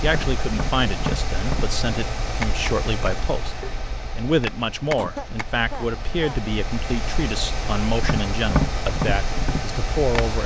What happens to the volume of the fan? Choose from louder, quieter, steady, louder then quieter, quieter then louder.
quieter then louder.